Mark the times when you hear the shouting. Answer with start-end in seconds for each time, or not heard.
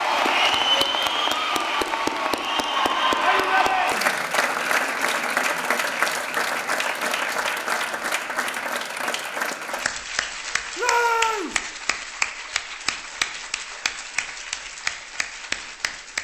3.2-4.2, 10.8-11.6.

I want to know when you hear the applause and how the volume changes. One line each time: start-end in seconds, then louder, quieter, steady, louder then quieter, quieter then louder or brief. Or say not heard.
0.0-16.1 quieter.